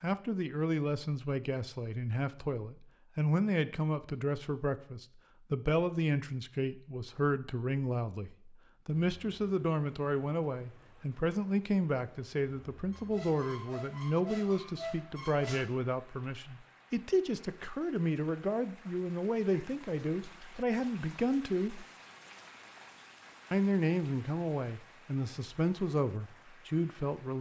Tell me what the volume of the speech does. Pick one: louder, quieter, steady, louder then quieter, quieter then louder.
steady.